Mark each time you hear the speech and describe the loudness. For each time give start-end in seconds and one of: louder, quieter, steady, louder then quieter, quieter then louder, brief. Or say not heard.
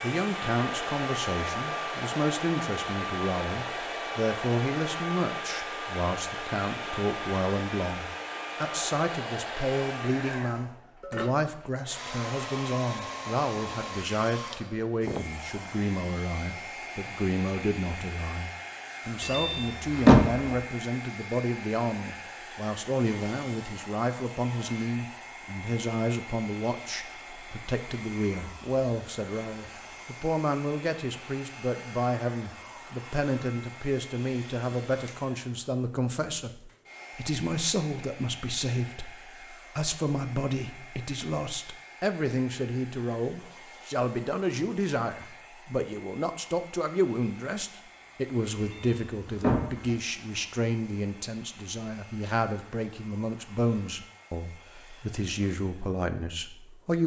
0.0-57.0 steady.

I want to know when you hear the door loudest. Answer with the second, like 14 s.
20 s.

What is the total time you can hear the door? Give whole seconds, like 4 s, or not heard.
3 s.